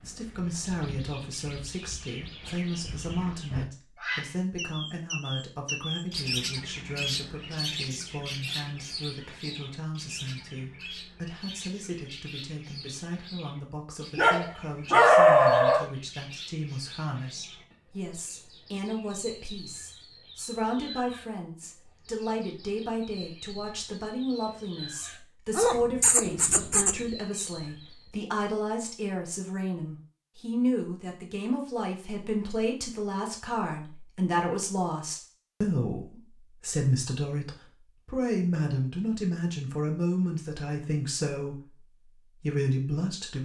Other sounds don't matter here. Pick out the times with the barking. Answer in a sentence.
The barking can be heard from 14.2 to 15.8 s and from 25.6 to 27.1 s.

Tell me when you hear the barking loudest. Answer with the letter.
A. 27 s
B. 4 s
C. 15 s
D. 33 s
C.